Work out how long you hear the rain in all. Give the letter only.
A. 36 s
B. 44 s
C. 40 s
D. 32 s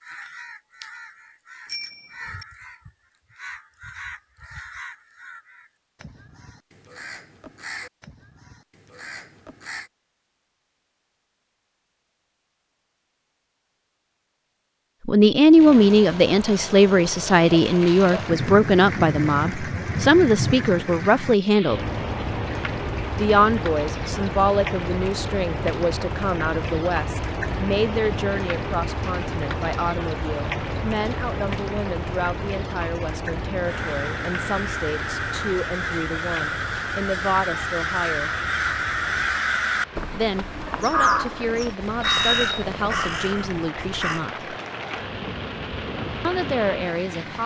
D.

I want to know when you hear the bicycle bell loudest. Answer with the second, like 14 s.
42 s.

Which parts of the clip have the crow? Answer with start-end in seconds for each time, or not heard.
0.0-9.9, 33.6-44.2.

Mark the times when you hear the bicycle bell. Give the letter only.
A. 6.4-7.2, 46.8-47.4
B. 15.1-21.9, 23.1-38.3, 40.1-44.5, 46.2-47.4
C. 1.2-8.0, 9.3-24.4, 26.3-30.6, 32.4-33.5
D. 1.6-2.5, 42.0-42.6
D.